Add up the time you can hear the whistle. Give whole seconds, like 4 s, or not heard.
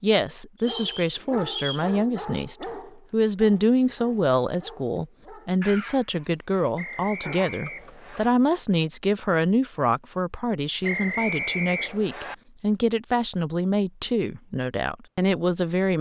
4 s.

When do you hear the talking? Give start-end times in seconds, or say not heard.
0.0-15.9.